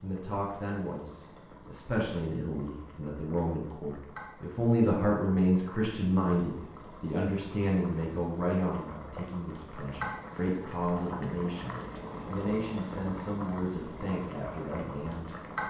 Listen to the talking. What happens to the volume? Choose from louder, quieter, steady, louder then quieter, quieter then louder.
louder then quieter.